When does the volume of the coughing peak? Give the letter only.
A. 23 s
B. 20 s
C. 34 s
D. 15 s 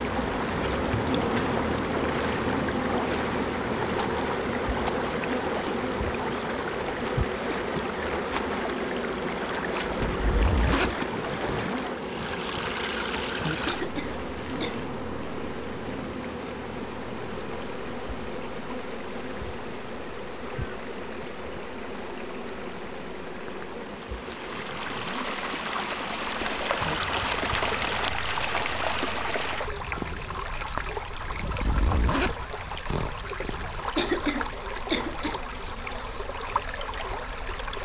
C.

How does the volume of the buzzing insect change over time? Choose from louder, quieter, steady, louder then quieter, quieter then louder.
quieter.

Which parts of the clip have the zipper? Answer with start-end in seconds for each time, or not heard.
10.1-11.6, 31.2-33.1.